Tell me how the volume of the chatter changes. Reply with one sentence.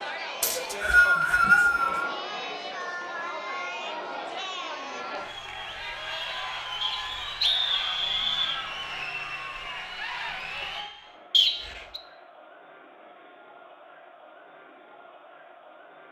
The loudness of the chatter goes down.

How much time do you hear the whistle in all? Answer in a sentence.
The whistle can be heard for 4 seconds in total.